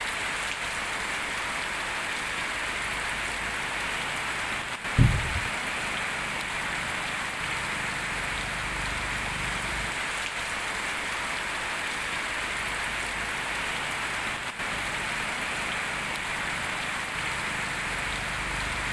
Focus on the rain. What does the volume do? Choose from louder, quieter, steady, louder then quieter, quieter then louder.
steady.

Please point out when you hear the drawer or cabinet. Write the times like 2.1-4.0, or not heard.
5.0-5.5.